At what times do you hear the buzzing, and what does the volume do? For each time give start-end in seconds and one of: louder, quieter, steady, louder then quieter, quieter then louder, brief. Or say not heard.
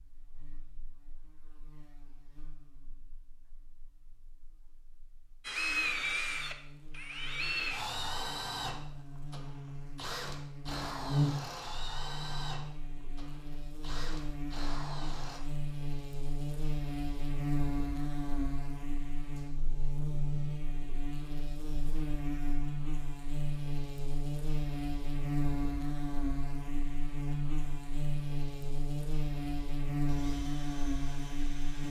0.0-31.8 louder.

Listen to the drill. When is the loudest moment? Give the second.
6 s.